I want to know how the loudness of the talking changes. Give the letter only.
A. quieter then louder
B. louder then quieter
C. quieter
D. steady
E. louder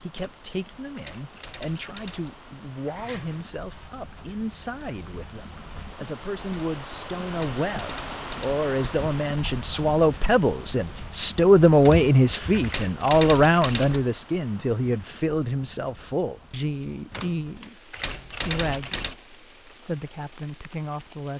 B.